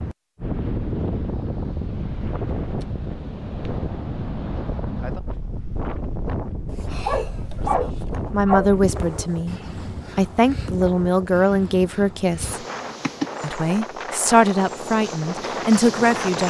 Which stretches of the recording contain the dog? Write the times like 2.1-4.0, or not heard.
6.7-8.8.